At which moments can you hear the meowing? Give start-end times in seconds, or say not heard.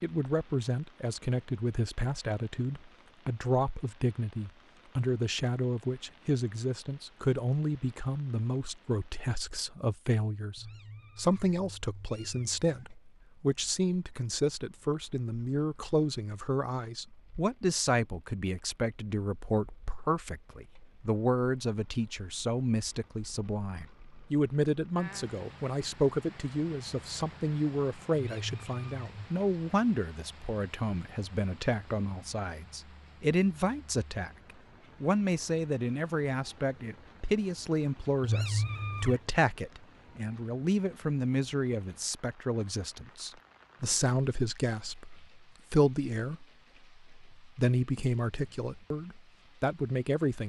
10.6-12.9, 28.1-29.1, 38.2-39.2.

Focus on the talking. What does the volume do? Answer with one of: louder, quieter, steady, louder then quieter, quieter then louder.
steady.